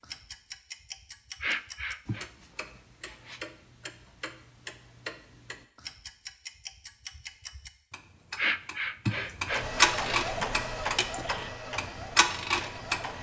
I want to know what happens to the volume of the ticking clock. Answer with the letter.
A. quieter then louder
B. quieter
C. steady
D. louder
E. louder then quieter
D.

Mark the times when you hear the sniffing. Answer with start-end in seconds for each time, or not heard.
1.4-2.3, 8.3-10.4.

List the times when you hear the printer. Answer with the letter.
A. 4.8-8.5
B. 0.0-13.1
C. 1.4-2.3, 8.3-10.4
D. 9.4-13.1
D.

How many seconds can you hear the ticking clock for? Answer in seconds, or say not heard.
13 s.